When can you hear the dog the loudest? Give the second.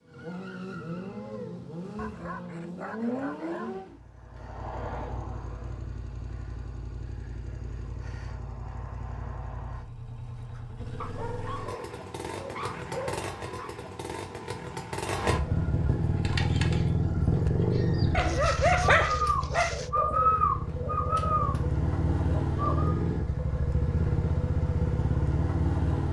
19 s.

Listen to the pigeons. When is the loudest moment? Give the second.
20 s.